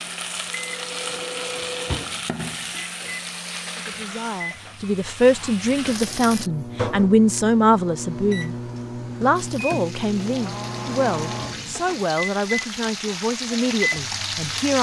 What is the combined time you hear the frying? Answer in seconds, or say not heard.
12 s.